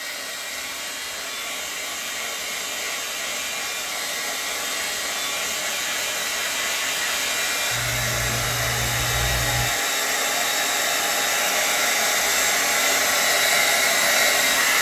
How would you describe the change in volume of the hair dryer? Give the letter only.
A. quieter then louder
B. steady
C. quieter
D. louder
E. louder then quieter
D.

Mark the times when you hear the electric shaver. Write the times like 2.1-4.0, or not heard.
0.0-9.8.